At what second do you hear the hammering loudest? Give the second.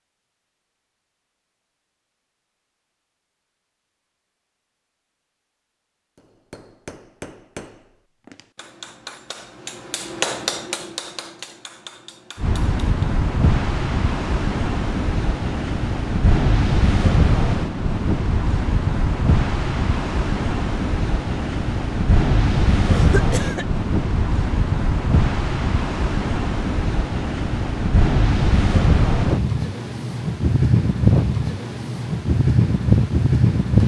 10 s.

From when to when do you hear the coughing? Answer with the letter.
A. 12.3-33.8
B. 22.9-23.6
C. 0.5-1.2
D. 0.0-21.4
B.